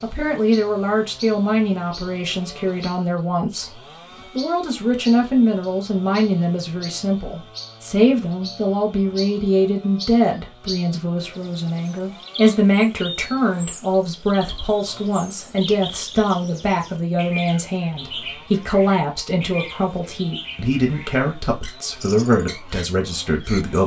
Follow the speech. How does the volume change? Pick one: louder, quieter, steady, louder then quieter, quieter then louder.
steady.